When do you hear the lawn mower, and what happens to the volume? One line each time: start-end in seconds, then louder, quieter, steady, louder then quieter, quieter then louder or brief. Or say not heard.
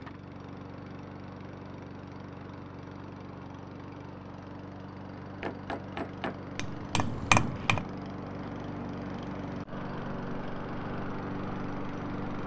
0.0-12.4 louder.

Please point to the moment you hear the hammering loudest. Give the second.
7 s.